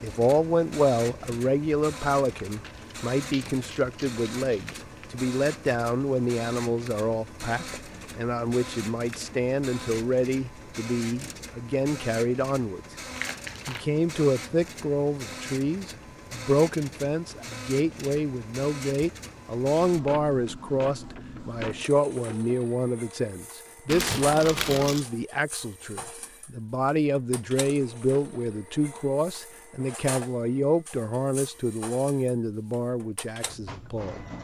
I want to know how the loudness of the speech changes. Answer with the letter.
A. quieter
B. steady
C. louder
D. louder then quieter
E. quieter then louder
B.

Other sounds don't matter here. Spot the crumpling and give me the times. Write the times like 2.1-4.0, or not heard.
2.6-5.2, 13.2-13.8, 23.9-25.1.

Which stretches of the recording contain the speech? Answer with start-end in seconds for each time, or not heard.
0.0-12.8, 13.7-34.2.